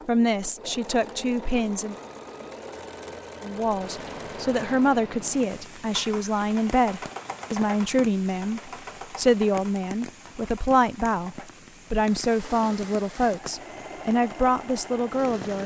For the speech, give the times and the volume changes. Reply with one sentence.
You can hear the speech briefly from 0.1 to 1.9 s; and from 3.4 to 15.6 s, at a steady volume.